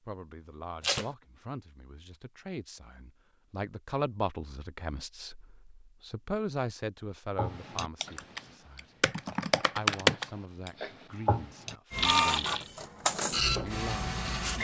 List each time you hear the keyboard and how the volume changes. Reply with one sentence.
The keyboard can be heard from 7.3 to 12.7 s, getting louder then quieter.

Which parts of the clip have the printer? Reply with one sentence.
You can hear the printer from 11.9 to 14.5 s.